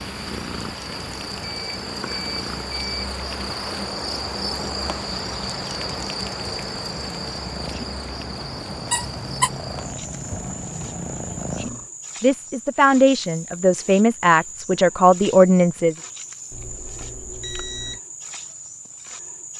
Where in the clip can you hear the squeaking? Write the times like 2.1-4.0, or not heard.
8.8-9.5.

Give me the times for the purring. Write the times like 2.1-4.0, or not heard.
0.0-11.9.